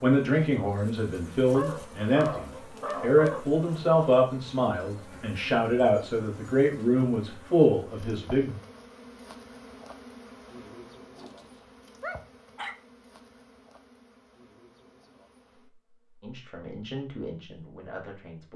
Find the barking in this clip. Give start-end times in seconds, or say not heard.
1.5-3.5, 11.2-12.8.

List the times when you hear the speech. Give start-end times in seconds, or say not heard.
0.0-8.6, 16.2-18.5.